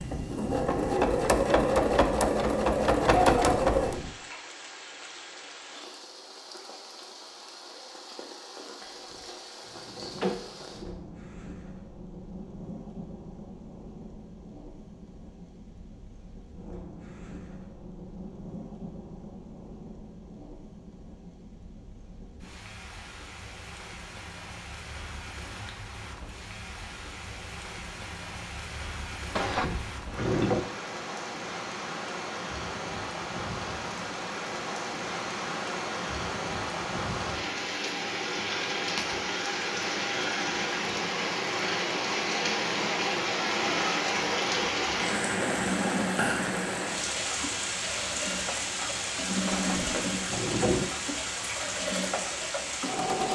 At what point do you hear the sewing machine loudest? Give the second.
3 s.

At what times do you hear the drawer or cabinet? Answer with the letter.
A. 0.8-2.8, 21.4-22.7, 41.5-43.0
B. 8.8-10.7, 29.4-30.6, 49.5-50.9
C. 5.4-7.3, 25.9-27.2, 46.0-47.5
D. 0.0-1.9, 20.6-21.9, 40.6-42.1
B.